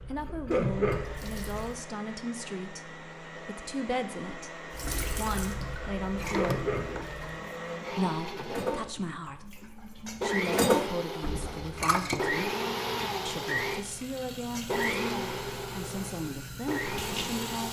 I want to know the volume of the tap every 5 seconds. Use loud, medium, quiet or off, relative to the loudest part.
loud, loud, medium, medium.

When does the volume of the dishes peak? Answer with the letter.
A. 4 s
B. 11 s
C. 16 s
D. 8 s
B.